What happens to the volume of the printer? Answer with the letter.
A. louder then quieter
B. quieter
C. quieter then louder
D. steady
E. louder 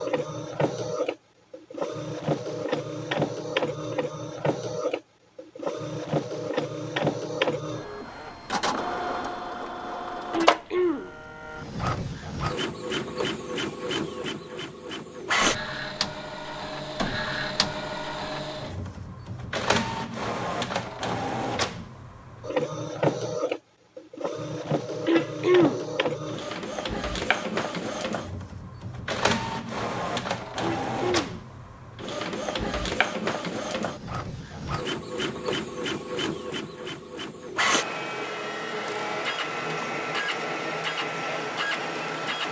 D.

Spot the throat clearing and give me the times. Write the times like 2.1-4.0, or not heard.
10.3-11.1, 25.1-25.9, 30.6-31.4.